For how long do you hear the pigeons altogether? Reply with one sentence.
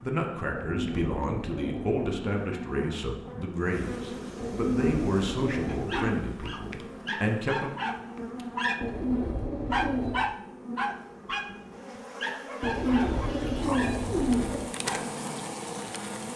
You can hear the pigeons for 7 seconds altogether.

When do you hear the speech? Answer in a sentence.
The speech can be heard from 0.0 to 7.7 s.